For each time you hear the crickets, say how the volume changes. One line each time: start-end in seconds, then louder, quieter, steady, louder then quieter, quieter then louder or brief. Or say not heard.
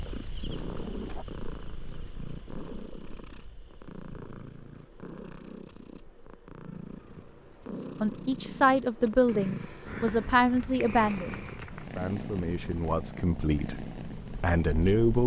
0.0-15.2 quieter then louder.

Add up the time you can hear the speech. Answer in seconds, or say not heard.
7 s.